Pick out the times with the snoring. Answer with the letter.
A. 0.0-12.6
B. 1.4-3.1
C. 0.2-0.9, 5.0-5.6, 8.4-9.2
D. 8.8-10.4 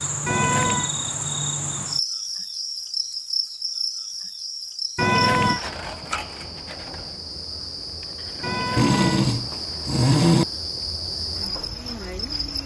D.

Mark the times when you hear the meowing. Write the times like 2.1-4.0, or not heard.
0.2-0.9, 5.0-5.6, 8.4-9.2.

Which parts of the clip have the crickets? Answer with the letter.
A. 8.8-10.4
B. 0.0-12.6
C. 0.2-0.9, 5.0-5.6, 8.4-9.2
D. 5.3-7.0
B.